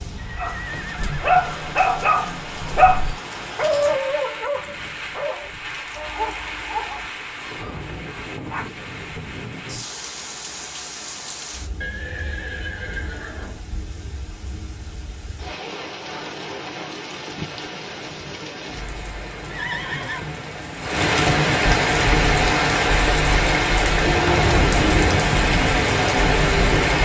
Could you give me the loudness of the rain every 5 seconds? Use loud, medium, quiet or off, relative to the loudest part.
quiet, quiet, quiet, quiet, loud, loud.